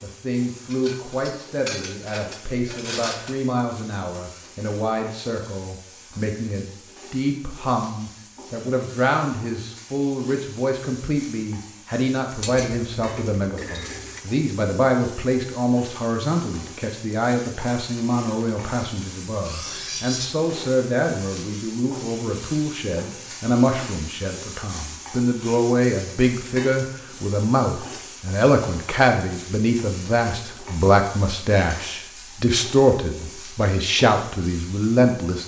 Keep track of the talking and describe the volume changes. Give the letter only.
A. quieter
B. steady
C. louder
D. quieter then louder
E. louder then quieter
C.